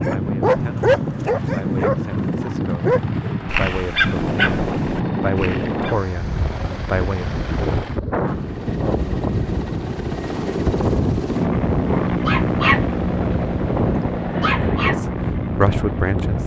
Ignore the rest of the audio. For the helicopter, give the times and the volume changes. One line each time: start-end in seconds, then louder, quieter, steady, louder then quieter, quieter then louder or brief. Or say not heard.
0.1-16.4 louder.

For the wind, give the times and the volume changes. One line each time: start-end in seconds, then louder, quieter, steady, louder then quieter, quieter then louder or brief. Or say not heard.
0.0-16.4 steady.